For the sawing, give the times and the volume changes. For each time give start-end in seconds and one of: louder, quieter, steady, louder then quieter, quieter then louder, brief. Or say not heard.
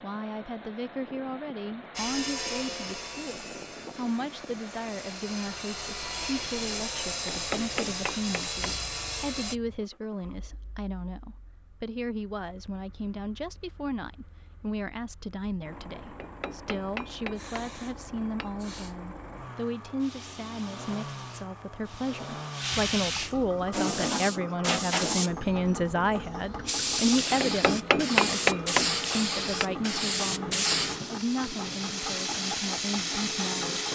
1.9-9.6 quieter then louder.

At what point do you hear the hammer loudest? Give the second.
28 s.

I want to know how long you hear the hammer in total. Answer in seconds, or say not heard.
6 s.